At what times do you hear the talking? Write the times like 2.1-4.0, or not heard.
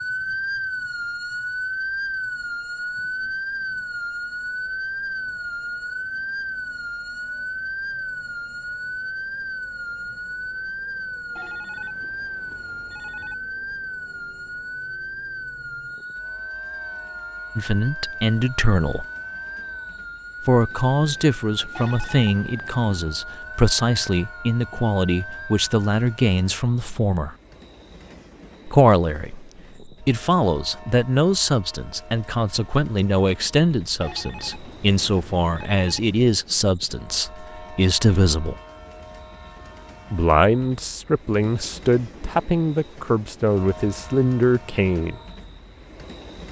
17.6-19.1, 20.4-27.4, 28.6-38.6, 40.1-45.1.